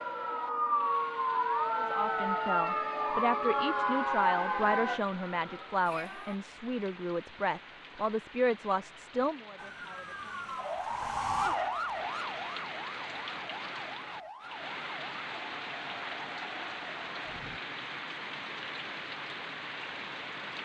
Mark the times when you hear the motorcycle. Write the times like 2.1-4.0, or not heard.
not heard.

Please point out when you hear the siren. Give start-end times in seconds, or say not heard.
0.0-6.4, 9.6-17.6.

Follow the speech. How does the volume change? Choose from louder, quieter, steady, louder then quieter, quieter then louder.
steady.